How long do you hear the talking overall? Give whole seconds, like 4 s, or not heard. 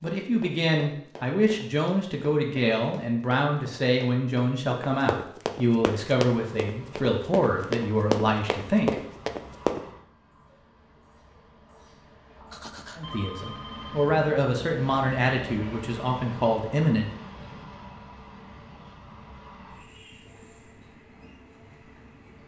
13 s.